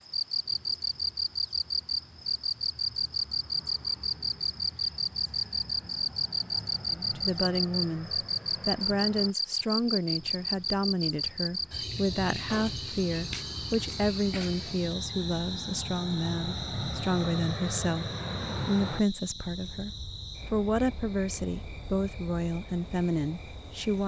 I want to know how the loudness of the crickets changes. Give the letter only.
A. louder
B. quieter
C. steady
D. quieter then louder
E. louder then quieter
B.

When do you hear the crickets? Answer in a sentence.
You can hear the crickets from 0.0 to 24.0 s.